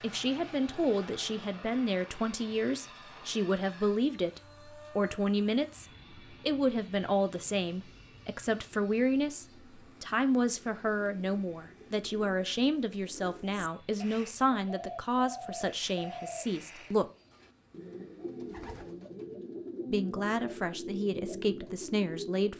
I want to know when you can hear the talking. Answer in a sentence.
The talking can be heard from 0.0 to 17.1 s and from 19.9 to 22.5 s.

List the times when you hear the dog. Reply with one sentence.
The dog can't be heard in this clip.